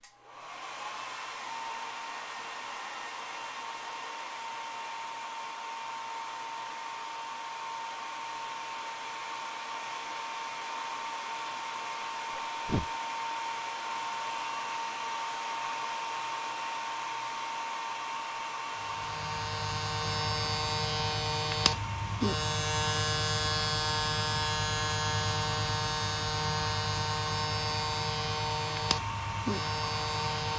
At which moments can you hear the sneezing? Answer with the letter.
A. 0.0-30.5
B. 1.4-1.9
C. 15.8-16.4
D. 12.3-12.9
D.